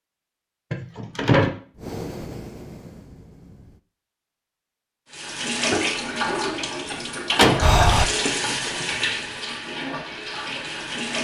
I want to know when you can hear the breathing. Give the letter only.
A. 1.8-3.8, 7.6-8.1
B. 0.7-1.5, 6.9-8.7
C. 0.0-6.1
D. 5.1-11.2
A.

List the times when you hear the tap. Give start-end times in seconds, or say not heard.
5.1-11.2.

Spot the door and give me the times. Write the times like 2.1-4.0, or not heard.
0.7-1.5, 6.9-8.7.